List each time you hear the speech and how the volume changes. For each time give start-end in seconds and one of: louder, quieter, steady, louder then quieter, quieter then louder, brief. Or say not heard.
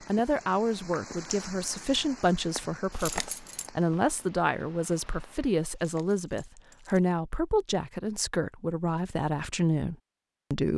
0.1-10.7 steady.